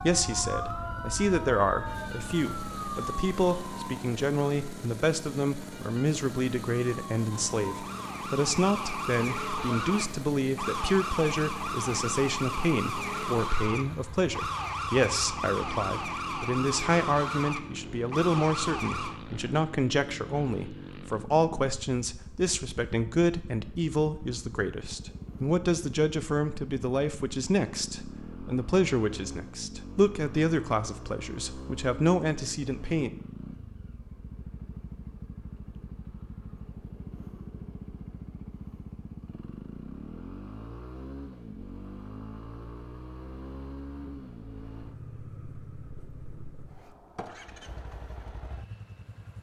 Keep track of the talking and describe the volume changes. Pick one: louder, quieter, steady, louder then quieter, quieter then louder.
steady.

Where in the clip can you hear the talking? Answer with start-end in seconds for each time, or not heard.
0.0-33.1.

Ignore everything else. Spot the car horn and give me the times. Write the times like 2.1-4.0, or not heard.
not heard.